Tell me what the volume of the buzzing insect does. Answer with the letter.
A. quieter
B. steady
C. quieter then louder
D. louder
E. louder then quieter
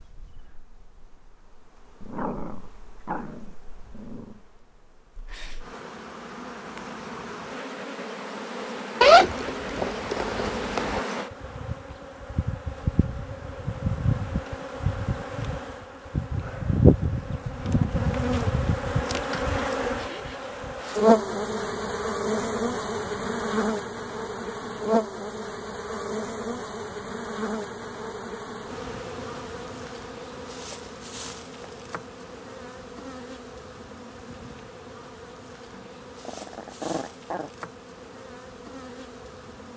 E.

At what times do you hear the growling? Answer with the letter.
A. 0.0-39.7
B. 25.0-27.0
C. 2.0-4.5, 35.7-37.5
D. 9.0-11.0
C.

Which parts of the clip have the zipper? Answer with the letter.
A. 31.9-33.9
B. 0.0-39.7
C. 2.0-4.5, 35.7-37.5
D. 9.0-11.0
D.